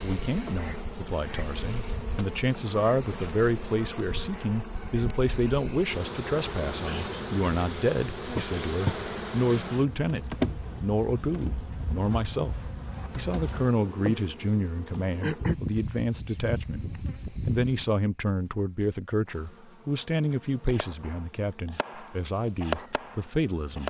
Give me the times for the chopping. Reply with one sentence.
You can hear the chopping from 20.6 to 23.8 s.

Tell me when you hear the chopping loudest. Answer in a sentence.
The loudest moment of the chopping is at 23 seconds.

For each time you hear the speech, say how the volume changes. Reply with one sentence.
You can hear the speech from 0.0 to 23.8 s, at a steady volume.